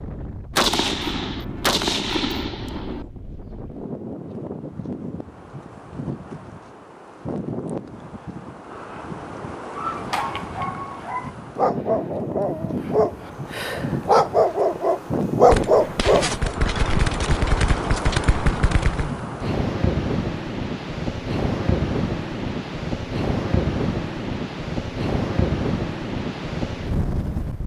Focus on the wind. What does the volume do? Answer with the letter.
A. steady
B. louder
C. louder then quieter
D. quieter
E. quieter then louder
B.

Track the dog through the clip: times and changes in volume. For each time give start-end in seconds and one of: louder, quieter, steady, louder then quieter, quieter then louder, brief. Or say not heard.
9.8-16.5 louder.